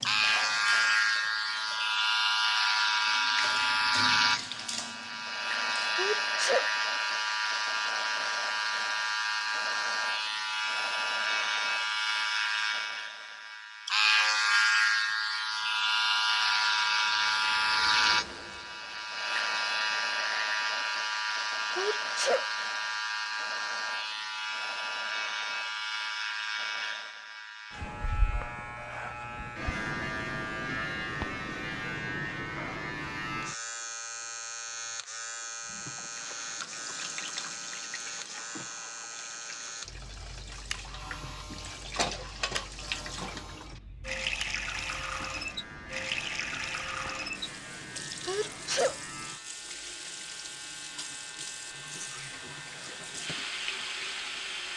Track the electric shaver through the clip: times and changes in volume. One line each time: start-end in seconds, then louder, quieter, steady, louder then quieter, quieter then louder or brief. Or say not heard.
0.0-54.7 quieter.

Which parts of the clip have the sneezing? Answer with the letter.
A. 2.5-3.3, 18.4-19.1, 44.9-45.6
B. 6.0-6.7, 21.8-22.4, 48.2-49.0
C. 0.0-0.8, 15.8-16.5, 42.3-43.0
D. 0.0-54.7
B.